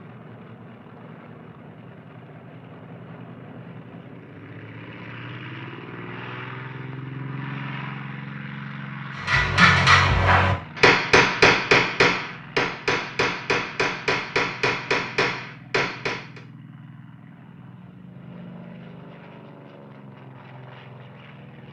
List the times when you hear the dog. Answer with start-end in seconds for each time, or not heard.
not heard.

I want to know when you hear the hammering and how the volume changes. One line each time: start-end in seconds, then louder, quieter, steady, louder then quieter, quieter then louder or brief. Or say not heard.
9.2-16.4 quieter.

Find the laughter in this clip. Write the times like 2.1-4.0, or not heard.
not heard.